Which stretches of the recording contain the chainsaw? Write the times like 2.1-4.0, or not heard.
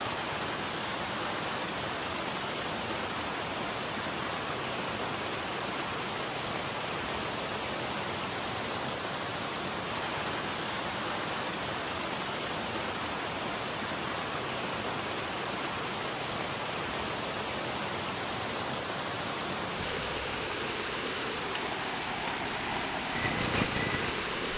21.9-24.4.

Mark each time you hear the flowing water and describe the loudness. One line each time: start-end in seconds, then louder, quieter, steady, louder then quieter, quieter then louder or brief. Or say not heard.
0.0-24.5 steady.